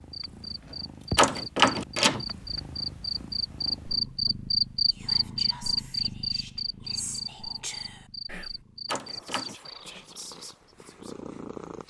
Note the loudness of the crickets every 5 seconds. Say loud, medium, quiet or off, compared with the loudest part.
loud, loud, off.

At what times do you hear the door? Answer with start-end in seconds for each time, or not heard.
1.1-2.2, 8.8-9.6.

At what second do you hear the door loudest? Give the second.
2 s.